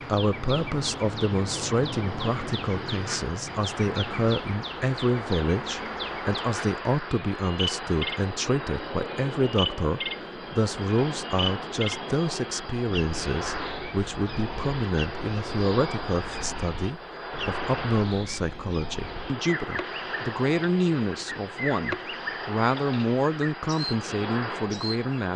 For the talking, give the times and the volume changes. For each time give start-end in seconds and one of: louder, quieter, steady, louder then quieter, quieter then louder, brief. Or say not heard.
0.1-25.3 steady.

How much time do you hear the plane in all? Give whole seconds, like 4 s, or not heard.
25 s.